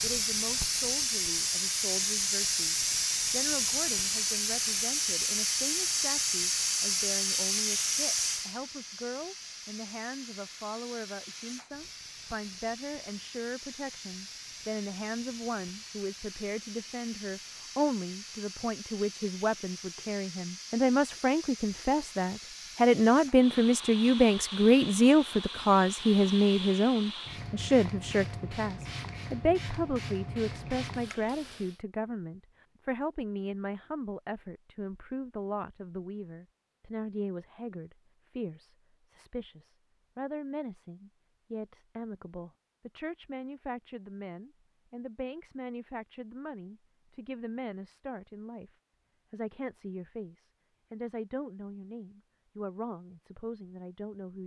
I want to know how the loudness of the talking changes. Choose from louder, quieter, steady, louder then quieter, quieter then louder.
louder then quieter.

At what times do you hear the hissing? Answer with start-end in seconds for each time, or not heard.
0.0-31.8.